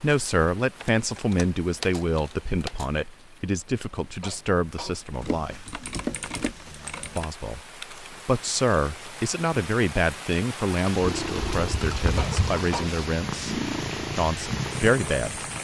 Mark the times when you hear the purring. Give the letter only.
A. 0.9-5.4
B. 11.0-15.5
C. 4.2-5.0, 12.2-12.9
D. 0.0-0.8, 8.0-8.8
B.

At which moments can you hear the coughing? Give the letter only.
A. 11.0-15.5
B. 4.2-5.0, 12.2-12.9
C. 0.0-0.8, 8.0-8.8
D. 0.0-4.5
B.